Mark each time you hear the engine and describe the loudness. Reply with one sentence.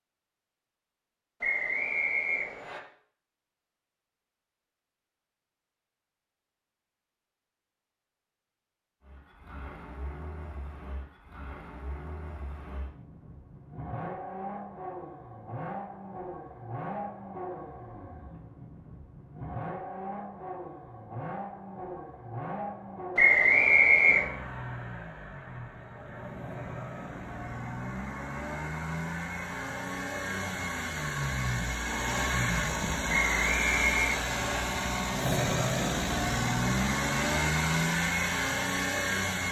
You can hear the engine from 9.0 to 39.4 s, getting louder.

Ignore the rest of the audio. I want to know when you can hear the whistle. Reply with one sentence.
The whistle can be heard from 1.4 to 2.8 s, from 23.1 to 24.2 s and from 33.0 to 34.4 s.